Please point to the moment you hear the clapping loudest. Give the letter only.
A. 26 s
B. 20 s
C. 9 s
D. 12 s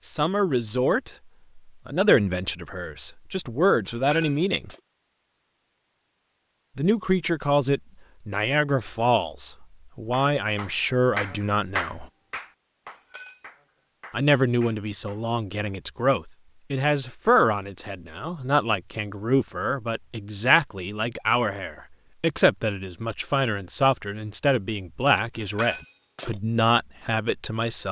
D.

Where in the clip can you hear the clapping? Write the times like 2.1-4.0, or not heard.
10.1-15.8.